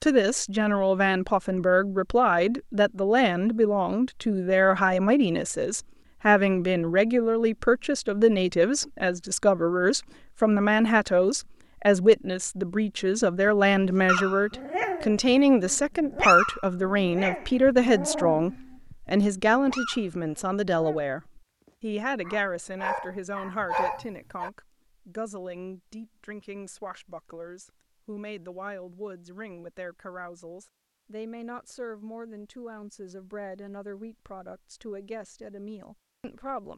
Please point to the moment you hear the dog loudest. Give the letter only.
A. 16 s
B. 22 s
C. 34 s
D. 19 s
A.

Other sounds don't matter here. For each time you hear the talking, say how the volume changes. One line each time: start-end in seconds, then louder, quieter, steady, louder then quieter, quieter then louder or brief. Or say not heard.
0.0-36.7 quieter.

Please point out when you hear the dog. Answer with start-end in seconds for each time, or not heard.
13.4-24.5.